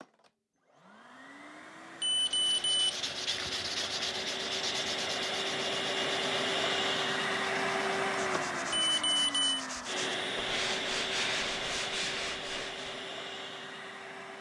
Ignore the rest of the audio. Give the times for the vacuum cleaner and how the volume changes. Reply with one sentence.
You can hear the vacuum cleaner from 0.0 to 14.3 s, getting louder then quieter.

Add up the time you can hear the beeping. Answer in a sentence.
You can hear the beeping for 2 seconds altogether.